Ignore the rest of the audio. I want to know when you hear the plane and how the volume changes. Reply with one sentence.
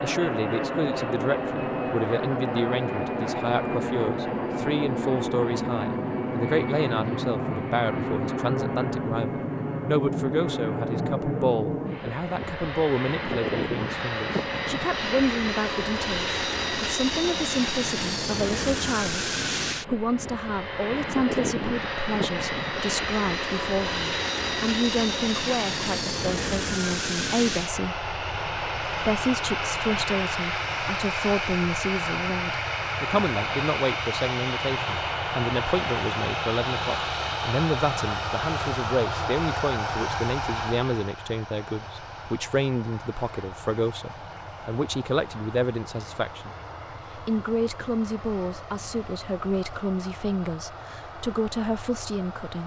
The plane can be heard from 0.0 to 52.6 s, getting quieter.